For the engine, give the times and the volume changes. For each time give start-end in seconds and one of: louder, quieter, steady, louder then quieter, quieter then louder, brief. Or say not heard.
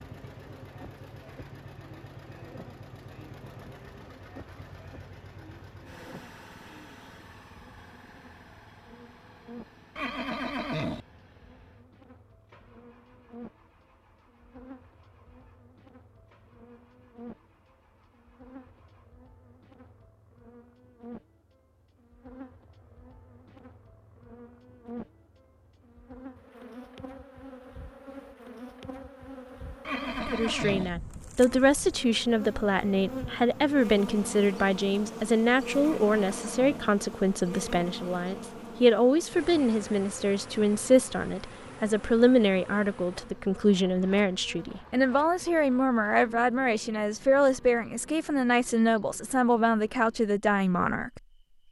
0.0-19.1 quieter.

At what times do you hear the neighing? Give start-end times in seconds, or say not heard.
9.9-11.0, 29.9-30.9, 35.8-36.9.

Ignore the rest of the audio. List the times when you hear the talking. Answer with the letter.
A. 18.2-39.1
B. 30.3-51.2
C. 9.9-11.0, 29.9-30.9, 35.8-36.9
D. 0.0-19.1
B.